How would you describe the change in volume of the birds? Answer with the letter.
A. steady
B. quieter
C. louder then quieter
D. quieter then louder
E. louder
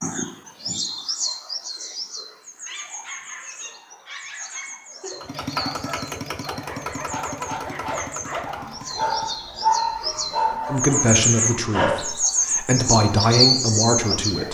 D.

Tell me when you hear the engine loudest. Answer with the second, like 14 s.
6 s.